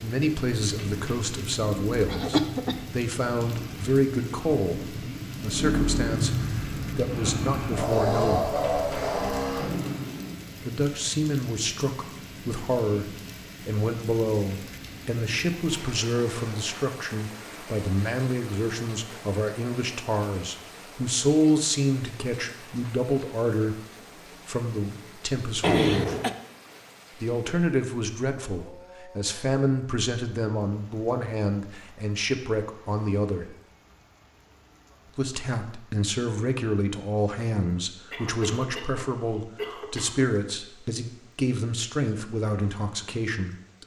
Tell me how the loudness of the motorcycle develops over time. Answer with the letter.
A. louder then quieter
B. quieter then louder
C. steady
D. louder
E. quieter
D.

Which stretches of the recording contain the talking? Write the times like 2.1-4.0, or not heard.
0.0-8.5, 10.6-23.8, 24.4-26.1, 27.1-33.5, 35.1-43.8.